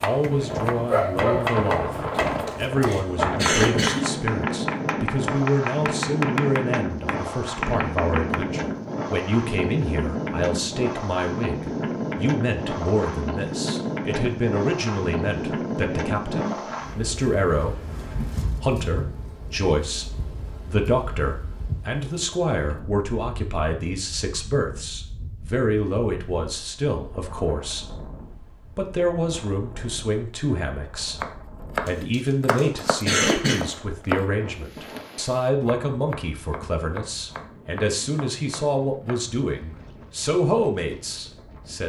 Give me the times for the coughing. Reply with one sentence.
The coughing can be heard from 2.2 to 4.2 s and from 31.9 to 33.7 s.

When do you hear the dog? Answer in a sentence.
The dog can be heard from 0.3 to 1.6 s.